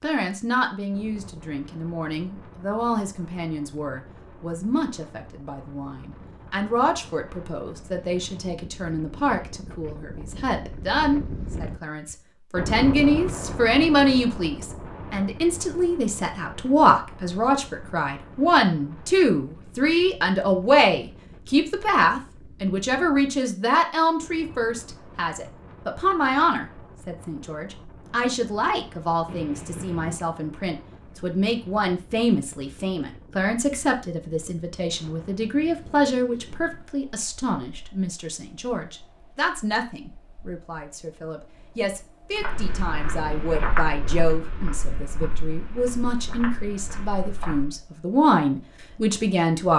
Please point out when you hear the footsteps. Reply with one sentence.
You can hear the footsteps from 42.4 to 47.8 s.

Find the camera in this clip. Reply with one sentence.
The camera can be heard from 29.2 to 30.2 s.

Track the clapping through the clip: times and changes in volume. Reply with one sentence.
The clapping can't be heard in this clip.